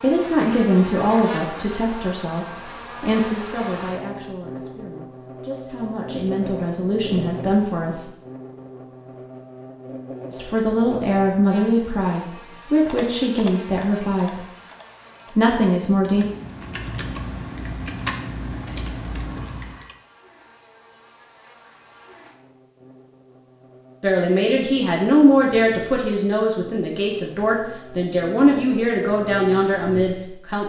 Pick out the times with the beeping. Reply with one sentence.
The beeping can be heard from 19.4 to 20.1 s.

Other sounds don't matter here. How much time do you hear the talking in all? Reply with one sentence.
You can hear the talking for 20 seconds altogether.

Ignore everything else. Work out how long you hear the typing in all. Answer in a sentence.
You can hear the typing for 7 seconds altogether.